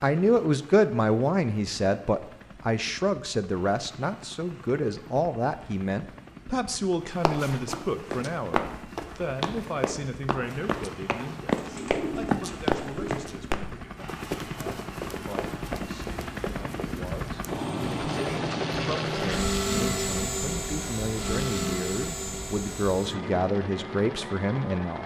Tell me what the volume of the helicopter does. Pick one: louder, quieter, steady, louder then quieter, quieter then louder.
louder.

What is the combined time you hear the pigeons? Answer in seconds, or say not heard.
2 s.